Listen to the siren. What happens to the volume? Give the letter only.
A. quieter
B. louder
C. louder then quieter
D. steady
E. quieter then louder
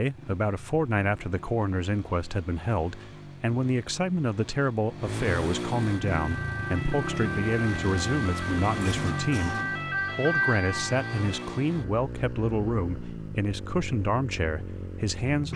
C.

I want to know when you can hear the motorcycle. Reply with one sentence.
The motorcycle can be heard from 0.0 to 15.5 s.